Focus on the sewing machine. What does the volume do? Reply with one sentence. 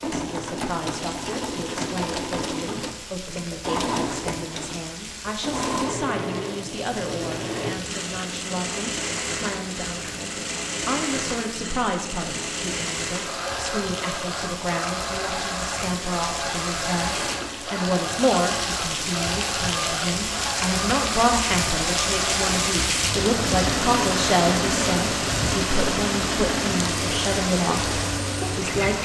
The volume of the sewing machine stays about the same.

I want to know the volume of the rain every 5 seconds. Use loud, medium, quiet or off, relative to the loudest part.
quiet, quiet, medium, medium, loud, loud.